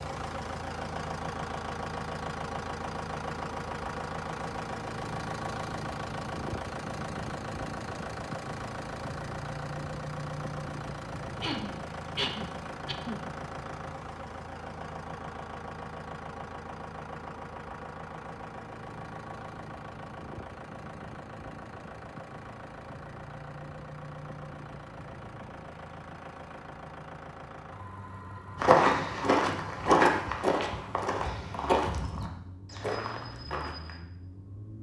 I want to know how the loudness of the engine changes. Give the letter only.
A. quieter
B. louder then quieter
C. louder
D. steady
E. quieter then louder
A.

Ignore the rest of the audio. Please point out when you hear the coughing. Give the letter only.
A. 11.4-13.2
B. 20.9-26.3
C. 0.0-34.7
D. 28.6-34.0
A.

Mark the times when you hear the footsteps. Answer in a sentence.
The footsteps can be heard from 28.6 to 34.0 s.